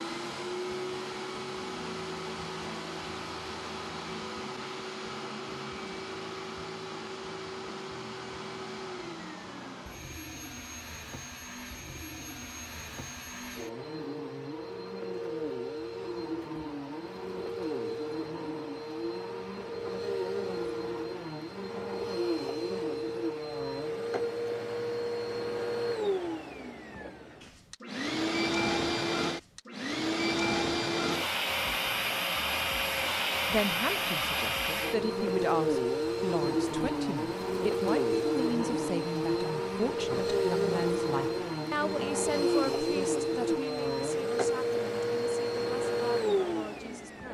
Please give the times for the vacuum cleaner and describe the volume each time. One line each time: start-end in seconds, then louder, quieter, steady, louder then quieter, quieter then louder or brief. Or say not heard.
0.0-47.2 louder.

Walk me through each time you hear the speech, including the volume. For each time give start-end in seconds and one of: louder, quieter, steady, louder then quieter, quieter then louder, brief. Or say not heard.
33.5-47.2 quieter.